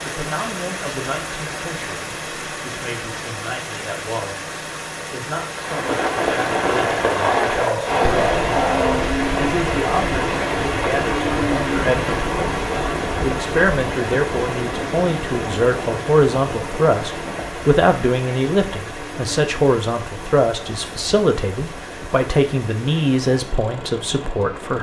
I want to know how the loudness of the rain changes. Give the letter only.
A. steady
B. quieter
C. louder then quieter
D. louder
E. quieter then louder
B.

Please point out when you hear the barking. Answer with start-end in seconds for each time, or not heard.
7.0-9.1.